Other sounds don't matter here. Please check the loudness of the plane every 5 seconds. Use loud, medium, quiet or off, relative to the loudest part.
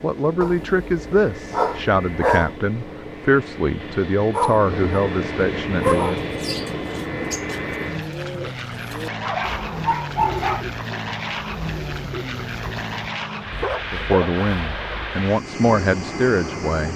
medium, loud, loud, loud.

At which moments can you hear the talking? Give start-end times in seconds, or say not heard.
0.0-6.2, 13.9-16.9.